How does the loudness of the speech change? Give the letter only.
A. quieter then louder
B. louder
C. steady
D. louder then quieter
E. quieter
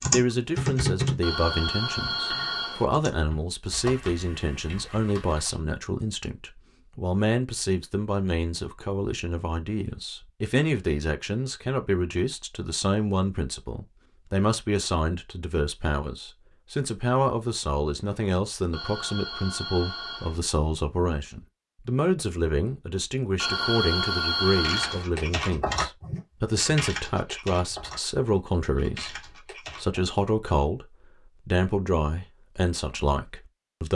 C.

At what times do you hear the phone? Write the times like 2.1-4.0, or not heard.
1.2-2.9, 18.7-20.4, 23.4-25.1.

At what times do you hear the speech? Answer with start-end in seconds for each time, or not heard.
0.0-33.9.